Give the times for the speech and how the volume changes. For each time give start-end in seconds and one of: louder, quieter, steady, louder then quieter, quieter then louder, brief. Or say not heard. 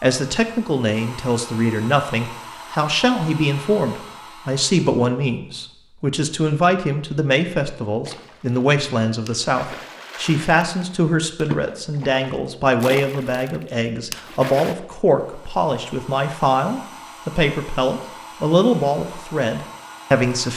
0.0-20.5 steady.